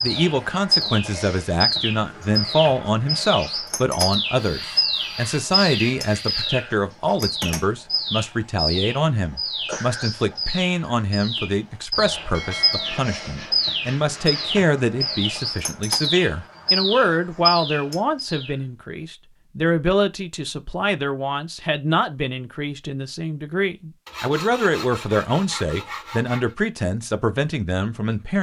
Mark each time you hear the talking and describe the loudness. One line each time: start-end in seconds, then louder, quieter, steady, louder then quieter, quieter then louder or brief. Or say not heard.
0.0-28.3 steady.